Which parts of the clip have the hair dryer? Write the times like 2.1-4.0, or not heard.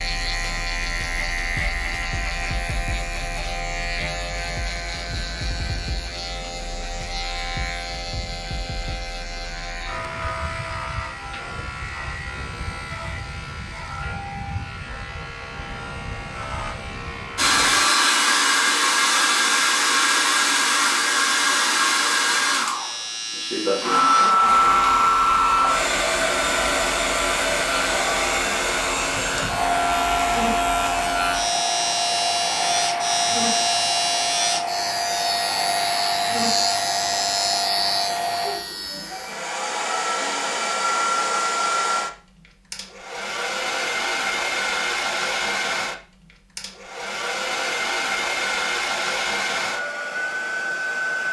17.4-51.2.